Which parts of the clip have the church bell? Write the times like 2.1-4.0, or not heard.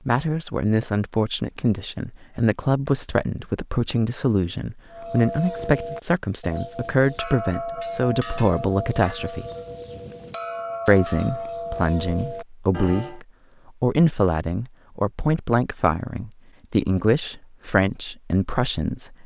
4.9-13.2.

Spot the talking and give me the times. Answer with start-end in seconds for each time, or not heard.
0.1-9.4, 10.8-19.2.